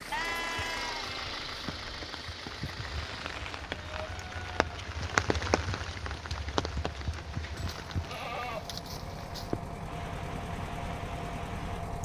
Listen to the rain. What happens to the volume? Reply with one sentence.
The volume of the rain goes up, then down.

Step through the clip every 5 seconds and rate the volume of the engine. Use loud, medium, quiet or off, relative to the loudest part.
loud, medium, loud.